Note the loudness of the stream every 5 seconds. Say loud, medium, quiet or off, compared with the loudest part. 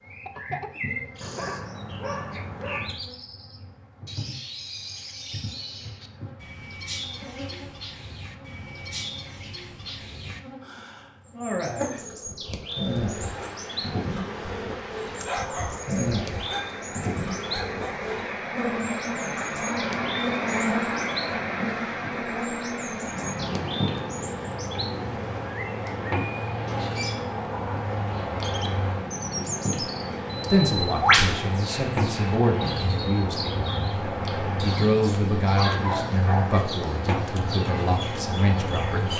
off, off, medium, loud, loud, medium, medium, medium.